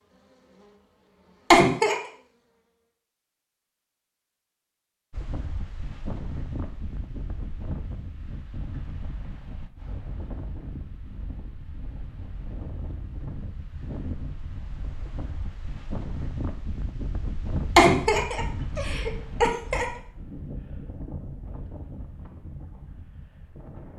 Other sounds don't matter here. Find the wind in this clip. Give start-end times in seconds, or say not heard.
5.1-23.9.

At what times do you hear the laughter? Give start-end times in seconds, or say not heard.
1.5-1.9, 17.8-19.9.